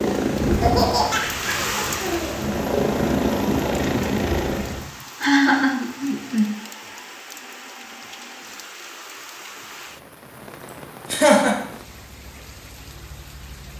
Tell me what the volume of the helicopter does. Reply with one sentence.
The loudness of the helicopter goes down, then up.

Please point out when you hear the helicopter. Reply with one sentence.
The helicopter can be heard from 0.0 to 4.9 s.